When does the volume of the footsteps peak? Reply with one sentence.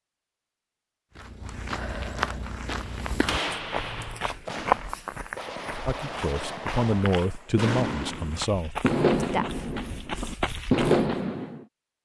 The loudest moment of the footsteps is at 5 seconds.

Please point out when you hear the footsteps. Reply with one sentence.
You can hear the footsteps from 1.1 to 11.2 s.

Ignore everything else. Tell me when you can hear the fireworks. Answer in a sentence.
You can hear the fireworks from 2.8 to 11.7 s.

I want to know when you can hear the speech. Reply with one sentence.
You can hear the speech from 5.8 to 10.2 s.